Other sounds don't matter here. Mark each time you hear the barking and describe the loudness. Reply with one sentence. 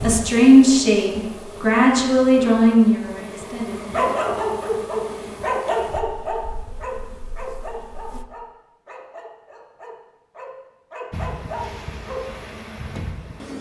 The barking can be heard from 3.9 to 12.2 s, getting quieter then louder.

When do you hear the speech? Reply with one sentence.
You can hear the speech from 0.0 to 4.2 s.